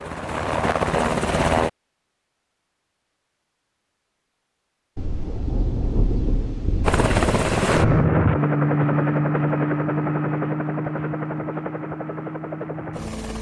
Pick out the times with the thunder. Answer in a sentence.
You can hear the thunder from 5.0 to 8.1 s.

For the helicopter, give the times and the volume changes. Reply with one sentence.
You can hear the helicopter briefly from 0.0 to 1.7 s; and from 6.8 to 13.3 s, getting quieter.